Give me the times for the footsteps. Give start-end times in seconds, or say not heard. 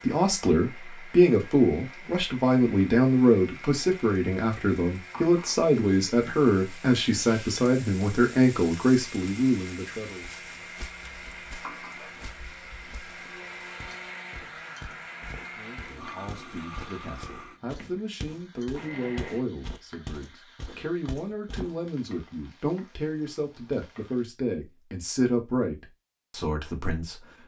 10.2-21.7.